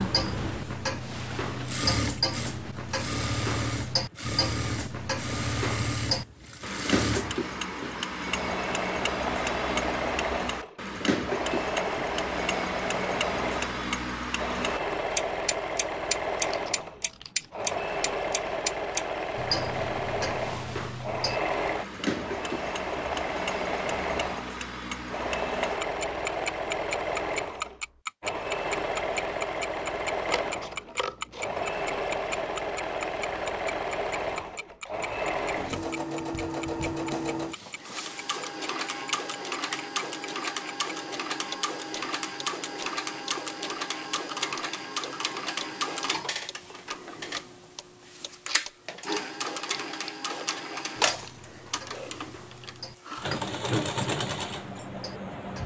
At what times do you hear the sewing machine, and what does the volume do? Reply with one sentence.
The sewing machine can be heard from 0.0 to 55.6 s, at a steady volume.